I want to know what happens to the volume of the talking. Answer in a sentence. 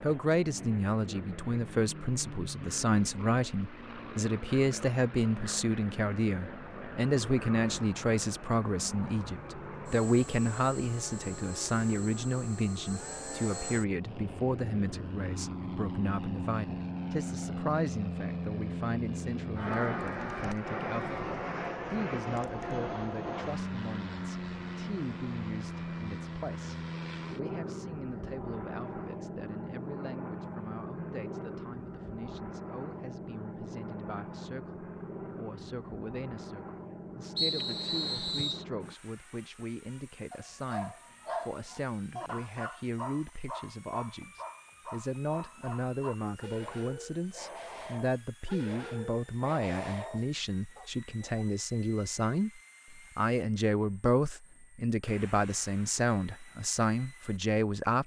The volume of the talking goes down, then up.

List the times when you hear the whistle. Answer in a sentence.
The whistle can be heard from 37.4 to 38.6 s.